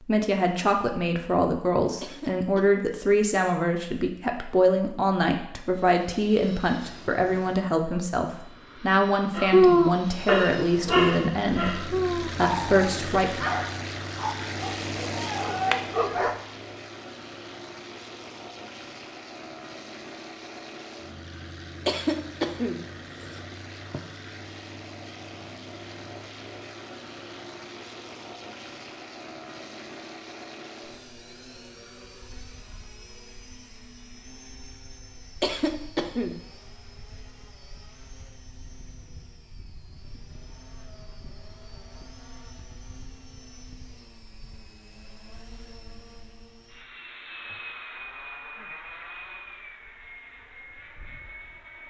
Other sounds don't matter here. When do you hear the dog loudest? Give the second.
10 s.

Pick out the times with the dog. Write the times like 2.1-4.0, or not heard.
9.3-16.4.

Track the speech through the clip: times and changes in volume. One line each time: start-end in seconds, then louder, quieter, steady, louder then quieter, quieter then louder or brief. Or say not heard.
0.0-13.4 steady.